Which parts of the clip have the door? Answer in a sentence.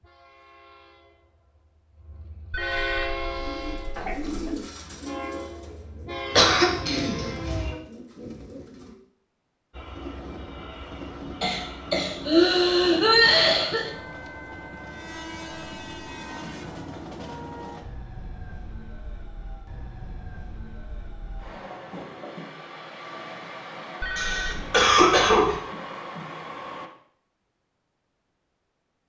The door can't be heard in this clip.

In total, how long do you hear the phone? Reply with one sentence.
The phone can be heard for 3 seconds in total.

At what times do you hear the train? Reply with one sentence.
You can hear the train from 0.0 to 7.8 s and from 9.7 to 26.9 s.